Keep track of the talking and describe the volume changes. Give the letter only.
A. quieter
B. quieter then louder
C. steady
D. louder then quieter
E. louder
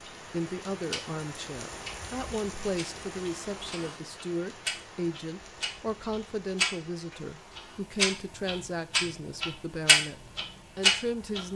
C.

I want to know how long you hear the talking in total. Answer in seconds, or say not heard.
11 s.